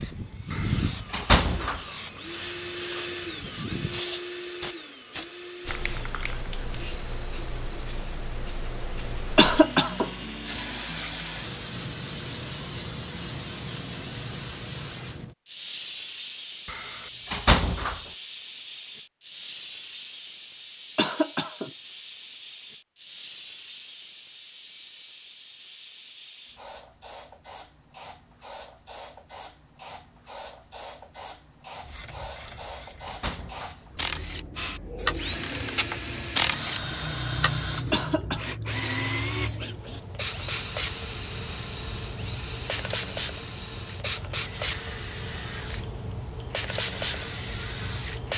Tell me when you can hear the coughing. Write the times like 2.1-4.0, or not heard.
9.3-10.1, 20.9-21.7, 37.9-38.5.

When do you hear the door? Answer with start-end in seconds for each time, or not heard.
0.5-1.9, 16.6-18.0, 32.5-33.8.